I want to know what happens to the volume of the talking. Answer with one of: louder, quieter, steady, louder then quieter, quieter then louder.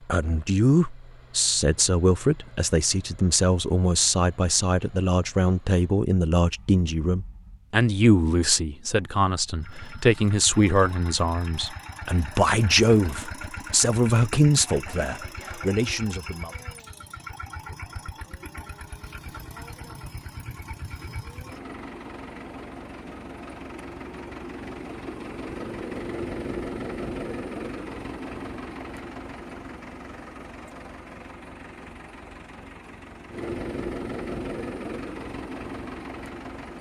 steady.